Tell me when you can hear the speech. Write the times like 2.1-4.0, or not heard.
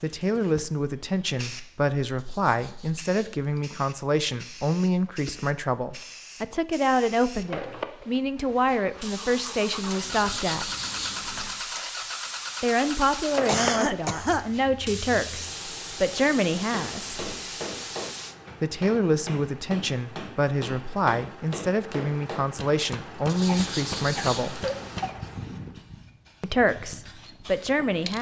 0.0-10.7, 12.6-17.2, 18.6-24.6, 26.4-28.1.